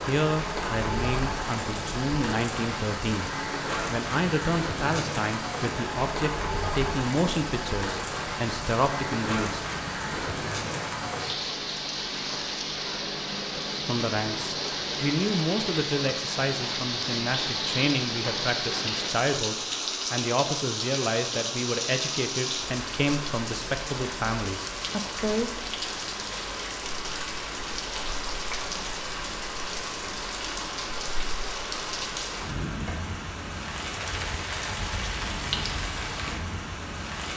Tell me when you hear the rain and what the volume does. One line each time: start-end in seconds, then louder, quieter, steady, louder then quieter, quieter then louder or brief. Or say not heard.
0.0-37.3 steady.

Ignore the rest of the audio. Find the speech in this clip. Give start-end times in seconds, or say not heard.
0.1-9.6, 13.8-25.5.